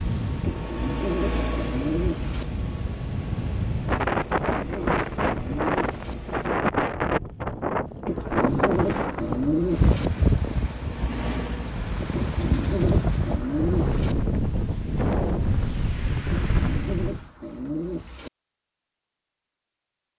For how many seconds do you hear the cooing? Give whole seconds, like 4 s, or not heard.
10 s.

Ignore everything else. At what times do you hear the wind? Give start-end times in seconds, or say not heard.
0.0-17.2.